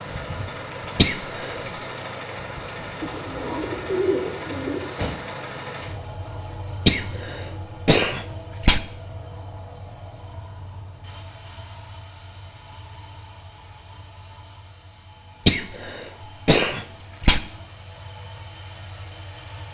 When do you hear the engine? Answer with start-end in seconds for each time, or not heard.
0.0-19.6.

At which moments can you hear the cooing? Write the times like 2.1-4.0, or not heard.
3.0-4.8.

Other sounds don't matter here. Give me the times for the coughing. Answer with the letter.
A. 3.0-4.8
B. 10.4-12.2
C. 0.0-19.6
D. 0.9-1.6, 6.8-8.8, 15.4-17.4
D.